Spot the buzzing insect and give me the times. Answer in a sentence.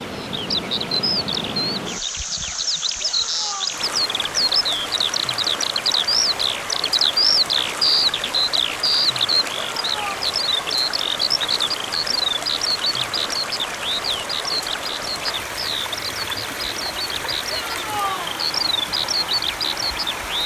You can't hear the buzzing insect here.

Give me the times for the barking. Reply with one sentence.
The barking can't be heard in this clip.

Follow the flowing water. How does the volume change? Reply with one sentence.
The volume of the flowing water stays about the same.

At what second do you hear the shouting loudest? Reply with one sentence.
The loudest moment of the shouting is at 18 seconds.